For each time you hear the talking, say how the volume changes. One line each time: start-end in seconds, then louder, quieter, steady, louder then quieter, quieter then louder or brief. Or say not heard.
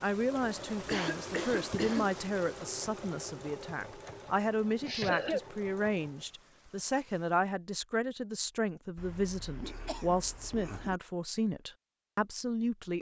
0.0-12.9 steady.